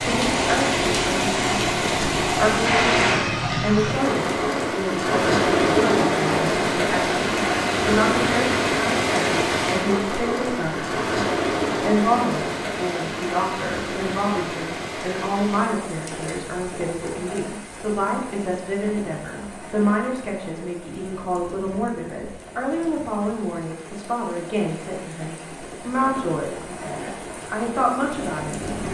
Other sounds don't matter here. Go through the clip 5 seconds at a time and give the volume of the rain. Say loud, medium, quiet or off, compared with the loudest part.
loud, loud, medium, quiet, quiet, quiet.